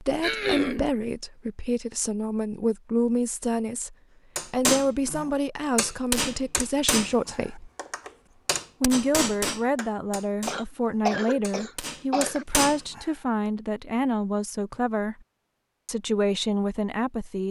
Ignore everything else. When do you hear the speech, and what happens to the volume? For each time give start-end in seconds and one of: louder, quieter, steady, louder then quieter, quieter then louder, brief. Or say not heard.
0.0-7.7 steady
8.8-15.2 steady
15.8-17.4 brief.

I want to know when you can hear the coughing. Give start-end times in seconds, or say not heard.
0.2-0.8, 10.4-12.4.